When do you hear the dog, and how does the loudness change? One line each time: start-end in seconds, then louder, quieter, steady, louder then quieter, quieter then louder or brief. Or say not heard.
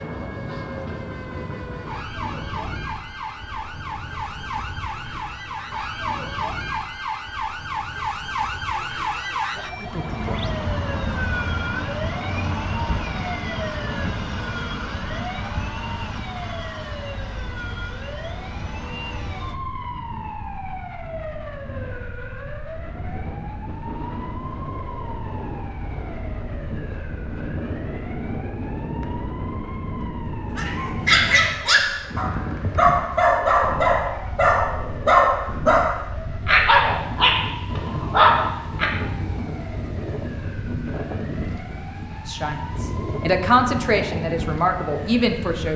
30.6-38.9 steady.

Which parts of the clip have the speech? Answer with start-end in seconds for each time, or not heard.
42.2-45.7.